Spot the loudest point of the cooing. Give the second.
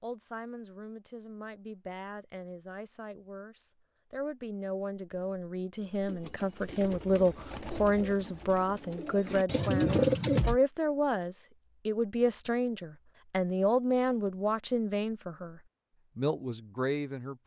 10 s.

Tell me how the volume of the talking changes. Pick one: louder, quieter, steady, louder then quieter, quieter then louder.
louder.